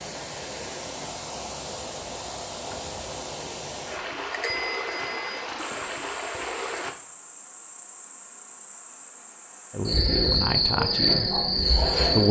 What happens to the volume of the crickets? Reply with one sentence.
The volume of the crickets goes up.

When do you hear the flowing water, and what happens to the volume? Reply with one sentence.
The flowing water can be heard from 0.0 to 7.0 s, at a steady volume.